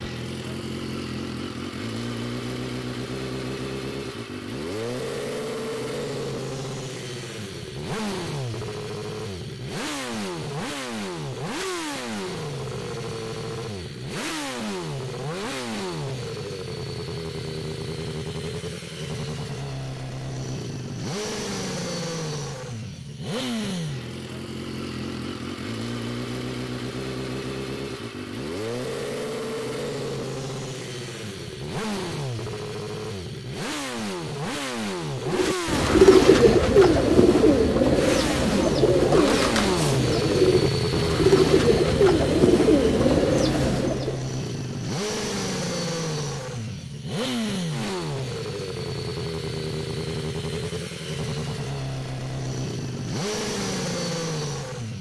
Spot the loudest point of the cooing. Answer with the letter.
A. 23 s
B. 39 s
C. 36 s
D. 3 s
C.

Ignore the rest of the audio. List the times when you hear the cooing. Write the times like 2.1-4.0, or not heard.
35.2-44.2.